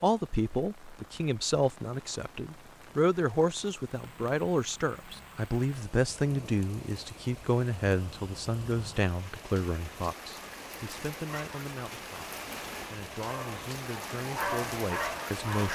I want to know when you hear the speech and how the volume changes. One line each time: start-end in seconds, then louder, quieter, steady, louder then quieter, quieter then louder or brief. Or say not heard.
0.0-15.7 quieter.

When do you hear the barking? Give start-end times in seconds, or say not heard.
13.2-15.7.